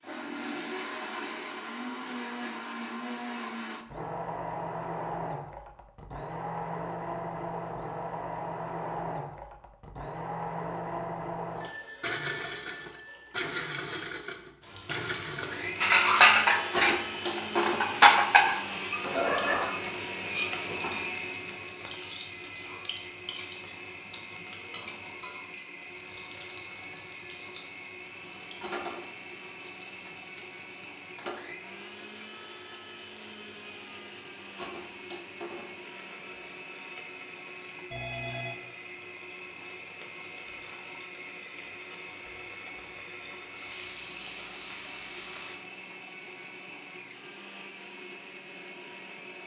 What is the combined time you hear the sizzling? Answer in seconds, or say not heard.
31 s.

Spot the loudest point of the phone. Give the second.
19 s.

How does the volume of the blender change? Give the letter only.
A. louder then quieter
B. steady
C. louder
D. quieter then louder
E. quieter
E.